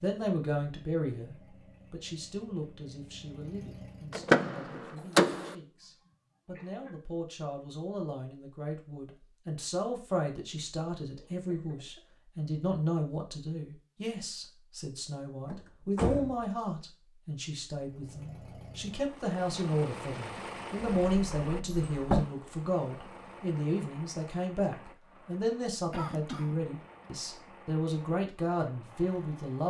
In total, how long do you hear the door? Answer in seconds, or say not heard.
4 s.